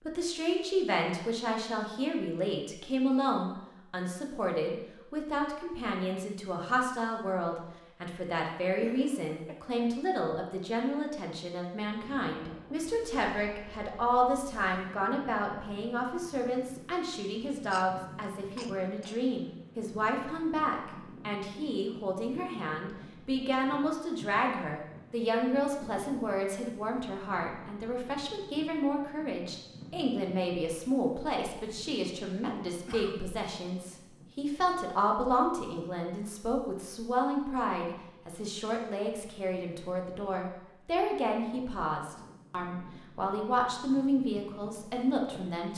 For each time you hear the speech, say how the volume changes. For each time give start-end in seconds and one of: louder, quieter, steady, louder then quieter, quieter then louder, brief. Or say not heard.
0.1-45.7 steady.